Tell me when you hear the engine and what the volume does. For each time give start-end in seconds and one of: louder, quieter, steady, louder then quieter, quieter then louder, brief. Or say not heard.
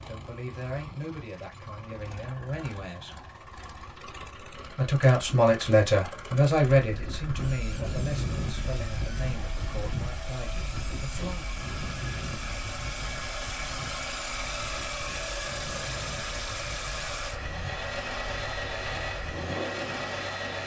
0.0-20.6 louder.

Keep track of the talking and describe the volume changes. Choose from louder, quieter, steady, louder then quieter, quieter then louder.
louder then quieter.